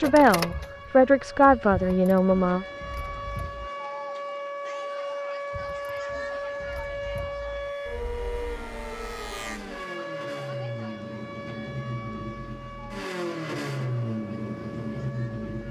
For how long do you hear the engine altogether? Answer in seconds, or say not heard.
14 s.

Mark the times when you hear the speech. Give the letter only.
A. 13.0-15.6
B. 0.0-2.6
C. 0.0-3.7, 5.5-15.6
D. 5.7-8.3
B.